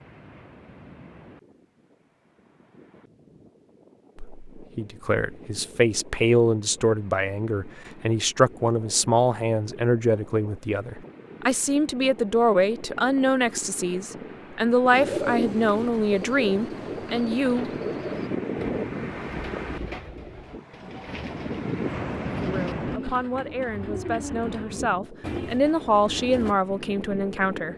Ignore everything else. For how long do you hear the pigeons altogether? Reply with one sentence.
The pigeons can be heard for 12 seconds in total.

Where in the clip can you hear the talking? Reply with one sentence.
The talking can be heard from 4.2 to 17.7 s and from 22.4 to 27.7 s.